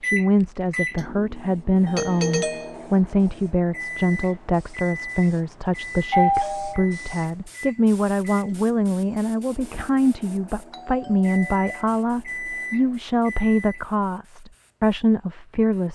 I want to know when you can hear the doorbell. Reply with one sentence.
The doorbell can be heard from 1.9 to 2.8 s, from 6.1 to 6.8 s and from 10.7 to 11.8 s.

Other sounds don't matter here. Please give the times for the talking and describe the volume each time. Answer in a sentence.
The talking can be heard from 0.0 to 15.8 s, at a steady volume.